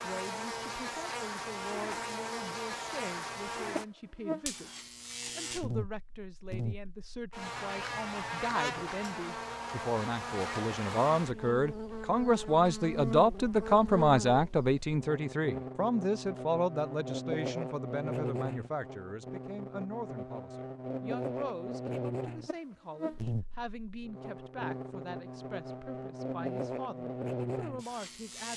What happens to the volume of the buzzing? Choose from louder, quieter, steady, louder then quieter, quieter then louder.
steady.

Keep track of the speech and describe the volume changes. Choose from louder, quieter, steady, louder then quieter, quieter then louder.
louder then quieter.